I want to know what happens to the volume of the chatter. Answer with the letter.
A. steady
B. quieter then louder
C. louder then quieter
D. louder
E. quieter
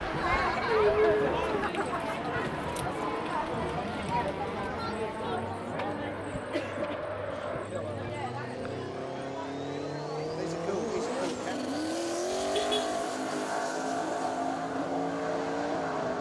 E.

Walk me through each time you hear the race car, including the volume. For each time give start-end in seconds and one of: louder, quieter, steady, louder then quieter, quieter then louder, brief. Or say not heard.
0.0-16.1 louder.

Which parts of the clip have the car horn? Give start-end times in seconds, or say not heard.
12.3-13.0.